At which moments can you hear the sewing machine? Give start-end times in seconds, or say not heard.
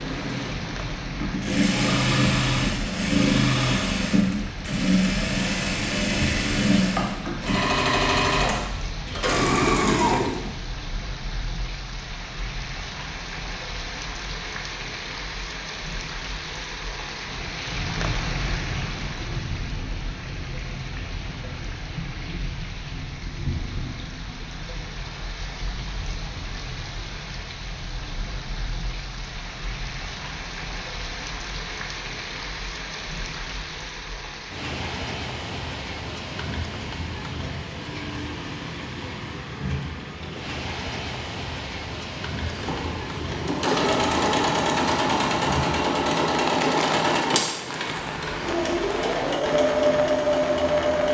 0.0-10.5, 42.4-51.1.